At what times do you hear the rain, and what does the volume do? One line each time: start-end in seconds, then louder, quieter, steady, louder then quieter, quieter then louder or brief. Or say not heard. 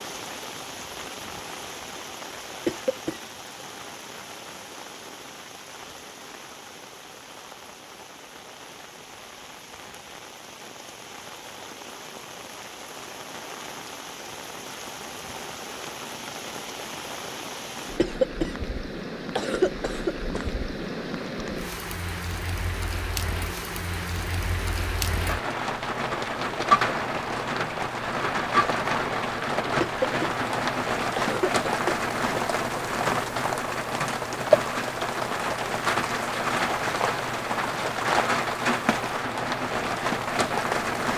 0.0-41.1 louder.